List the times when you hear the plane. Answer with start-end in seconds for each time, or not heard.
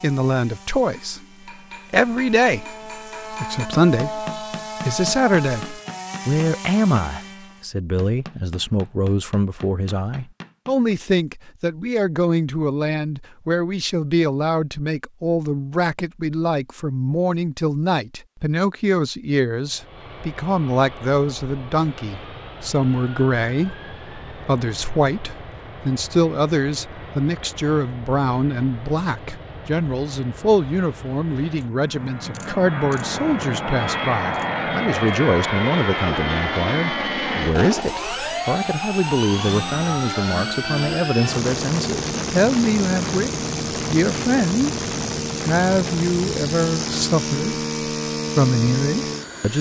0.0-7.7, 19.6-49.5.